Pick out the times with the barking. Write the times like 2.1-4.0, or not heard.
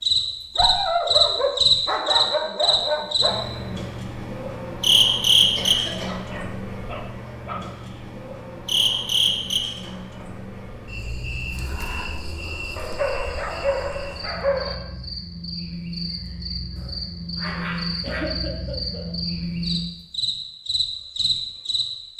0.6-3.4, 6.0-8.1, 12.8-14.8, 16.8-18.4.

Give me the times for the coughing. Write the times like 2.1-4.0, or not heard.
5.5-6.2, 18.0-19.1.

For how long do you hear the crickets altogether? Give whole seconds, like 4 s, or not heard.
22 s.